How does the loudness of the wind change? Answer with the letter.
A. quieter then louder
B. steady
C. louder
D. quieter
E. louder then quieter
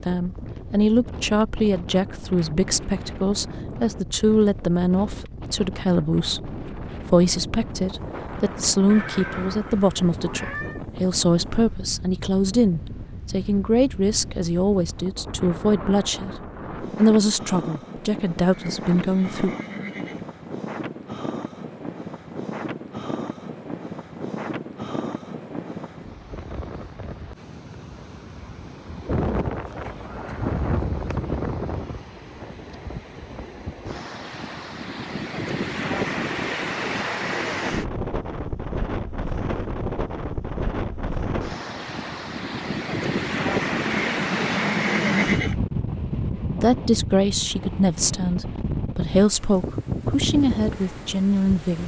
C.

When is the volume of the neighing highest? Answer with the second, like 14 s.
45 s.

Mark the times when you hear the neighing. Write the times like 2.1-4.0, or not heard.
8.8-10.8, 18.5-20.3, 43.9-45.6.